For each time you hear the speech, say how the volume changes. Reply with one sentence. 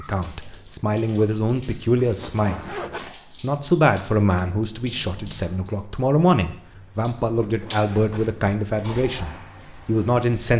You can hear the speech briefly from 0.0 to 2.8 s; and from 3.4 to 10.5 s, at a steady volume.